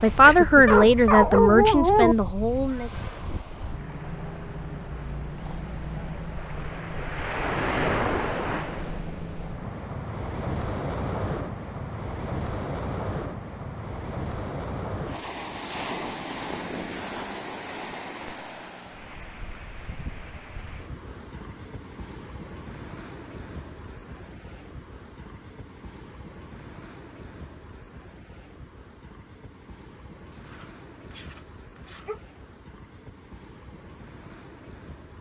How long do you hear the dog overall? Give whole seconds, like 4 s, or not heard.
4 s.